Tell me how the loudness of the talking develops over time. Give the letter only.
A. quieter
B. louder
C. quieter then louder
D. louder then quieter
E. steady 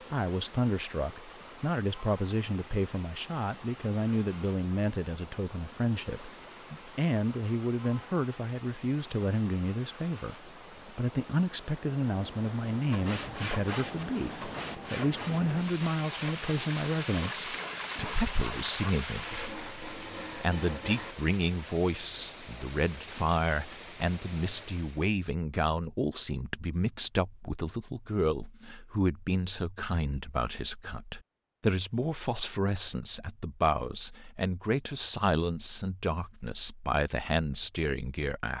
E.